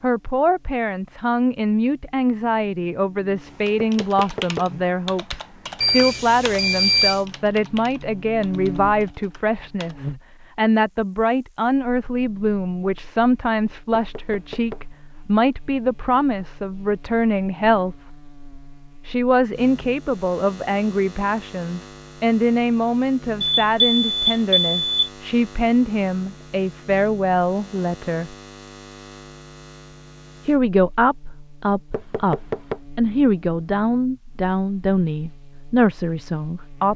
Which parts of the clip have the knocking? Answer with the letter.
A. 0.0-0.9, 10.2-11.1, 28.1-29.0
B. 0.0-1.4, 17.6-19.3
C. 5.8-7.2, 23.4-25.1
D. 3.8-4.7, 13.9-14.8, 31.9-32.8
D.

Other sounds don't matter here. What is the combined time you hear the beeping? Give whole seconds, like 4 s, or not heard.
3 s.